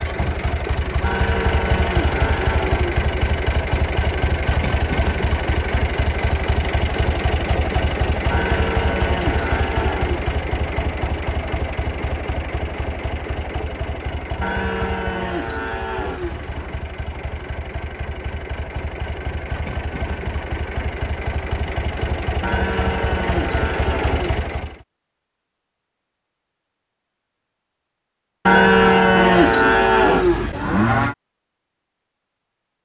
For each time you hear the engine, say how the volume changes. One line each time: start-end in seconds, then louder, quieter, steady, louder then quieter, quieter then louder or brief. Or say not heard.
0.0-24.8 quieter then louder.